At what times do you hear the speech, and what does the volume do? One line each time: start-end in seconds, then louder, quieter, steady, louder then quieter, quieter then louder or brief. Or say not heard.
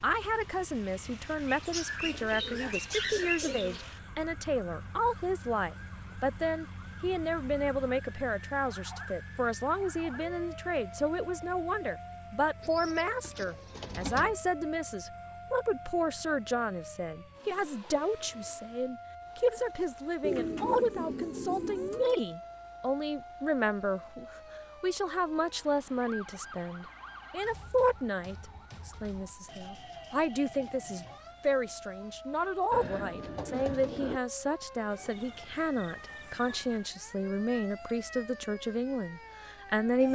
0.0-40.0 steady.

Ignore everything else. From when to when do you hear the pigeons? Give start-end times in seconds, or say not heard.
1.5-3.9, 12.6-14.4, 20.2-22.1, 32.7-34.2.